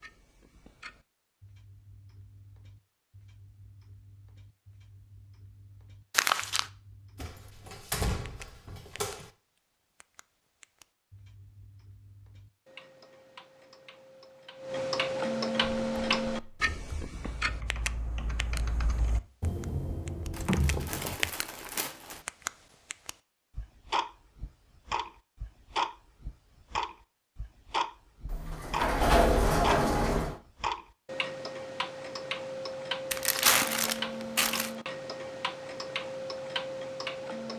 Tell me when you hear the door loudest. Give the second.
29 s.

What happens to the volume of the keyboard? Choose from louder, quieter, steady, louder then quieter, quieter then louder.
louder.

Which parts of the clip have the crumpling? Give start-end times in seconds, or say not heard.
6.1-6.7, 20.3-22.2, 33.1-34.7.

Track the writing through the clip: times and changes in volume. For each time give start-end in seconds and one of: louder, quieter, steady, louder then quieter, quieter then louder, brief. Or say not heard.
not heard.